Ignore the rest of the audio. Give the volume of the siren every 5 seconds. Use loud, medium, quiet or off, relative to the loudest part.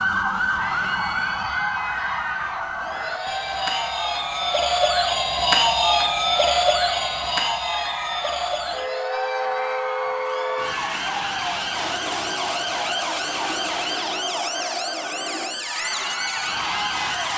loud, loud, medium, medium.